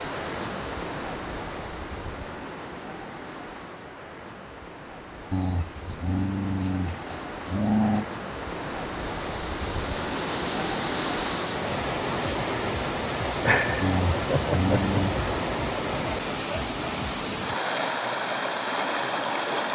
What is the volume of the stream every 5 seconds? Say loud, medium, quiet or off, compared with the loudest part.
medium, medium, loud, loud.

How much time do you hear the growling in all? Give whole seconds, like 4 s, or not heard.
4 s.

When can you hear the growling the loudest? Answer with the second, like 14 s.
8 s.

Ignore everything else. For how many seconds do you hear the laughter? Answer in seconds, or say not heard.
2 s.